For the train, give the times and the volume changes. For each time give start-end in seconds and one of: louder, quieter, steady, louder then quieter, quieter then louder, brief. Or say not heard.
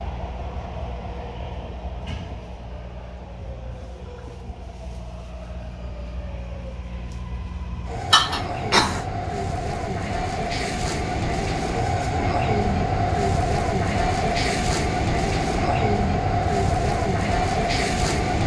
0.0-18.4 louder.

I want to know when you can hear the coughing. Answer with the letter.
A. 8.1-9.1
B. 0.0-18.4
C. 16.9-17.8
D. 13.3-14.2
A.